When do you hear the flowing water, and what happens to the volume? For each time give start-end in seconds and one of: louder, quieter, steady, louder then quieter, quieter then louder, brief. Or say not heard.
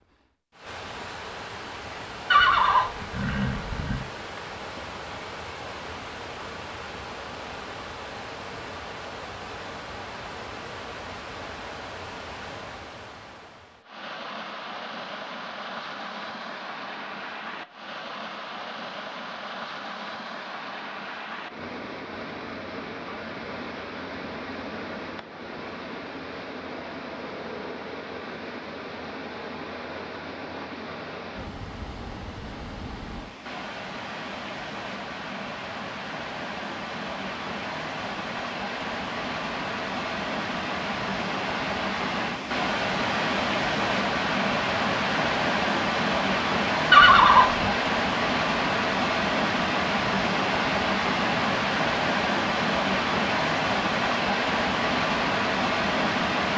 0.1-56.5 louder.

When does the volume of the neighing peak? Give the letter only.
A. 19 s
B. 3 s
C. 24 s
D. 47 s
D.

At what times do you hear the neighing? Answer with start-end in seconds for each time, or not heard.
2.3-4.0, 46.9-47.7.